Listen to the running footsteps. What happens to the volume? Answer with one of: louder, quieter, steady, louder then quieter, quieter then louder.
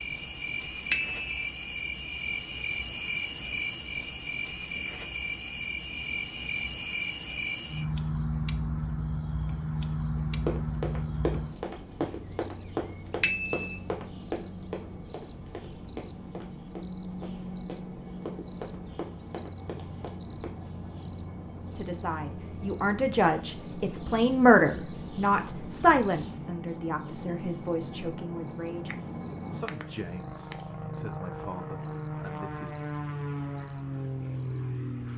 quieter.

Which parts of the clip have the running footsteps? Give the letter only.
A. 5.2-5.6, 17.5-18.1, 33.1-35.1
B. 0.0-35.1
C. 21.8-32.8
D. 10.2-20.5
D.